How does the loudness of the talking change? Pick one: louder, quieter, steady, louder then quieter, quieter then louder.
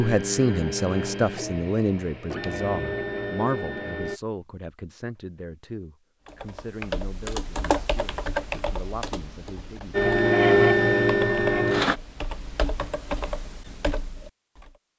quieter.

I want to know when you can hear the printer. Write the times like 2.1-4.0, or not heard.
0.0-4.2, 9.9-12.0.